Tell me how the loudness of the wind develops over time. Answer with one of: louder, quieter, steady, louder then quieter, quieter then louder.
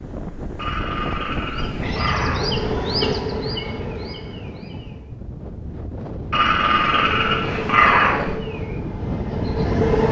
quieter then louder.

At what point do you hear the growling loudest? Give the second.
8 s.